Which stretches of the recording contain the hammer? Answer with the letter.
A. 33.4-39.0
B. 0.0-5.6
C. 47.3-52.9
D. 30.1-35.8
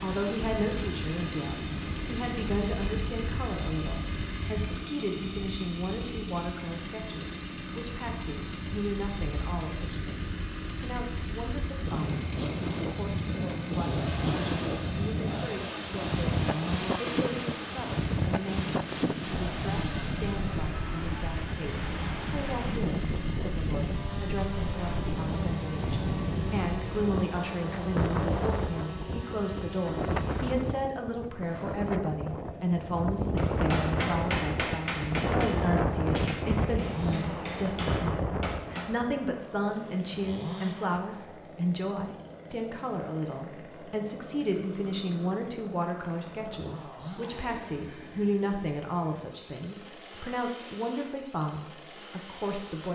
A.